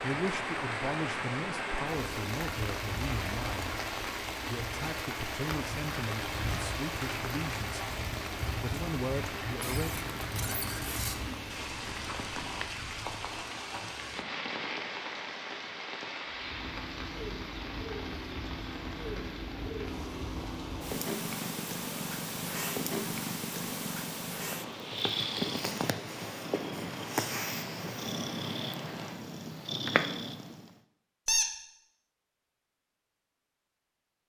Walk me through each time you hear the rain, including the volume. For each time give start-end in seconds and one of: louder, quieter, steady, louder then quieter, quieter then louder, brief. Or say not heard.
0.0-29.1 quieter.